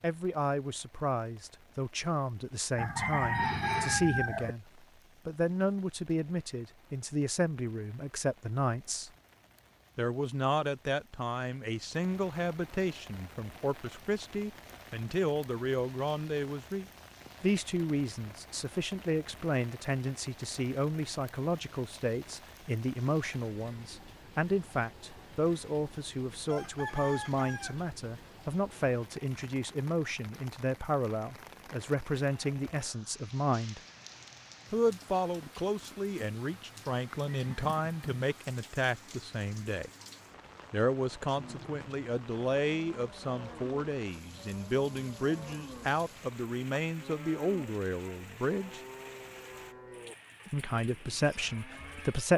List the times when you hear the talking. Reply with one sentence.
You can hear the talking from 0.0 to 9.1 s, from 9.9 to 33.8 s, from 34.7 to 39.9 s, from 40.7 to 48.8 s and from 50.5 to 52.3 s.